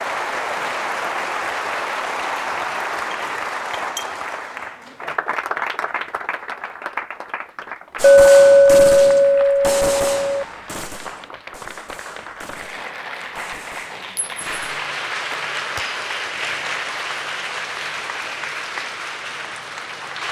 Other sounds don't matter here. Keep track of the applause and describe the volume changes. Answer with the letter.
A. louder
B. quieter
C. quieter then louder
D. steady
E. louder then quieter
C.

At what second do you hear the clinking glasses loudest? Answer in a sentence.
The loudest moment of the clinking glasses is at 8 seconds.